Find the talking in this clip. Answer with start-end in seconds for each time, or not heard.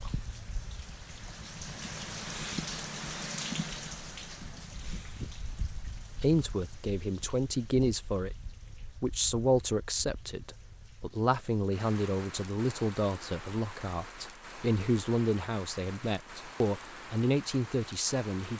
6.2-8.3, 9.0-18.5.